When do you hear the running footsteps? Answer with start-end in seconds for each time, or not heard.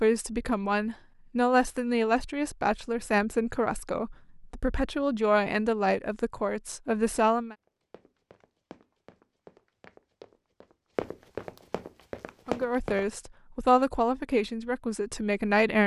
7.7-13.3.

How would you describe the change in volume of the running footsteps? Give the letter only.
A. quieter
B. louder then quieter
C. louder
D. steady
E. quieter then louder
C.